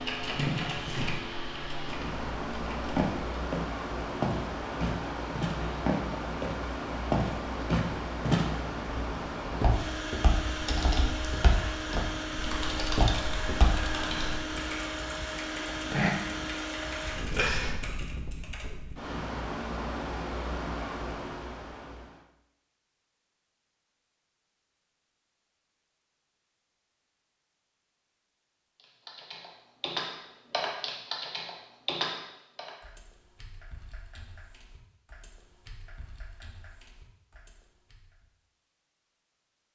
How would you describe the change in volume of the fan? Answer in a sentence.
The loudness of the fan stays about the same.